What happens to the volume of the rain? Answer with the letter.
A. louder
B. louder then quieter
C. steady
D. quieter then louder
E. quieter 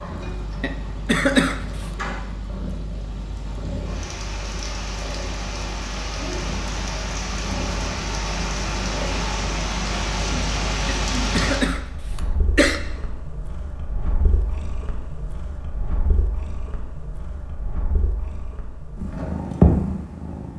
A.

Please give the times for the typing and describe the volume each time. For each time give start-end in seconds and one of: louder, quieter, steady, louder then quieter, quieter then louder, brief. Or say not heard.
not heard.